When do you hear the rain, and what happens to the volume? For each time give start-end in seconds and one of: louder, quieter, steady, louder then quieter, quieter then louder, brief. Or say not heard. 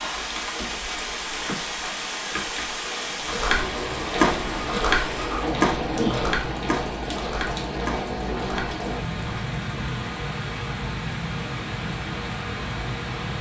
0.0-13.3 steady.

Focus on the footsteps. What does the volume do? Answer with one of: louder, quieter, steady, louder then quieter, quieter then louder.
quieter.